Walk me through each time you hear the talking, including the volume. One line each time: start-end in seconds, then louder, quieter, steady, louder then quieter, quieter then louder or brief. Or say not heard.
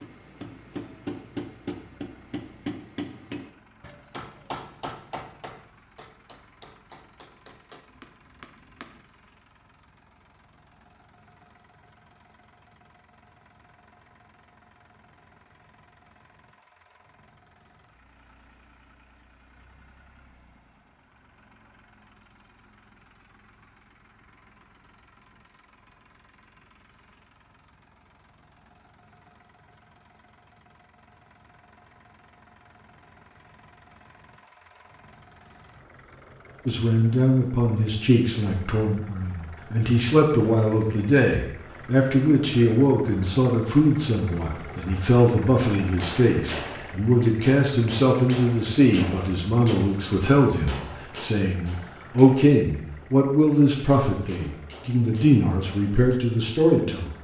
36.6-57.1 steady.